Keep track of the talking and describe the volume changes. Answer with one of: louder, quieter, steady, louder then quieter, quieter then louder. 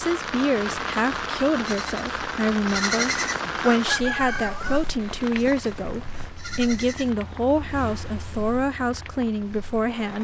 steady.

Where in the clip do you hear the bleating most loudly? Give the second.
3 s.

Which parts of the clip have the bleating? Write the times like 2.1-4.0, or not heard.
1.6-3.4, 5.3-7.1.